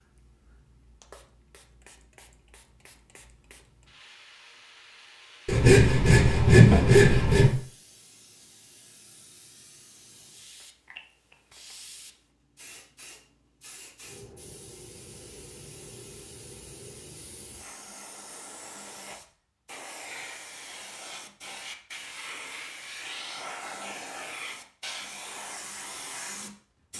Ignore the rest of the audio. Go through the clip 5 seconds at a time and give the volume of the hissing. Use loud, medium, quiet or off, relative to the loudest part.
quiet, quiet, medium, medium, loud, loud.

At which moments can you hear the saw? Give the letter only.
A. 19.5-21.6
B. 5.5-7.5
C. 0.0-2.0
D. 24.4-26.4
B.